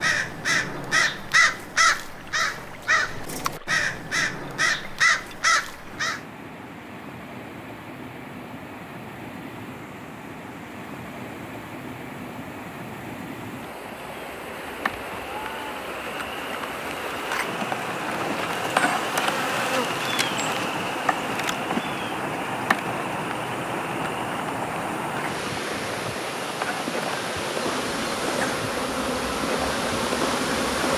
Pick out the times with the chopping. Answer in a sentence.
The chopping can't be heard in this clip.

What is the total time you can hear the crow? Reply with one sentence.
The crow can be heard for 6 seconds in total.